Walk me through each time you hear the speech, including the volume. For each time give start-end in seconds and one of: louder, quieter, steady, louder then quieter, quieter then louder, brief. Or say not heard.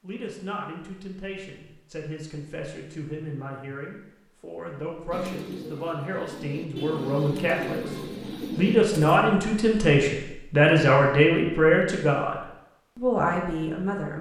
0.0-14.1 louder.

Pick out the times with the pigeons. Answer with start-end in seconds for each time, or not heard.
5.1-9.2.